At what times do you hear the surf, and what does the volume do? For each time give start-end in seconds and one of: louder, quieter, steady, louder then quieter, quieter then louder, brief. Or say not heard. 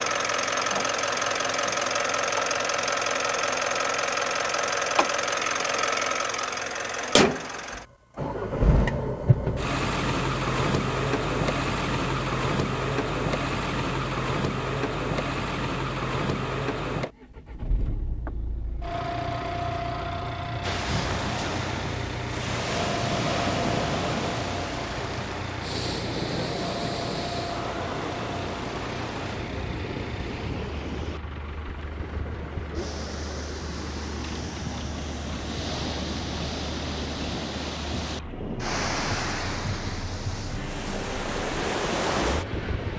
20.6-42.9 quieter then louder.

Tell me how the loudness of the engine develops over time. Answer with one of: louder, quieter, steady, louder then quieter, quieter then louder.
quieter.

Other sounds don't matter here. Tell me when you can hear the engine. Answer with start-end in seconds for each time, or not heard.
0.0-42.9.